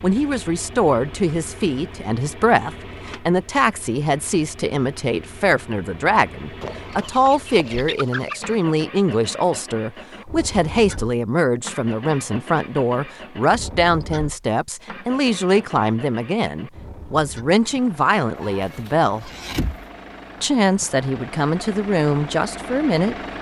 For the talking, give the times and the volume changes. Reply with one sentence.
The talking can be heard from 0.0 to 19.3 s, at a steady volume; and briefly from 20.4 to 23.1 s.